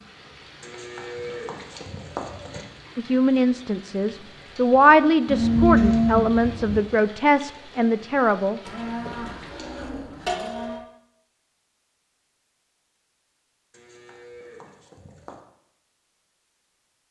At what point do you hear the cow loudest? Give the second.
6 s.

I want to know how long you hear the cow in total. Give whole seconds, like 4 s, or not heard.
7 s.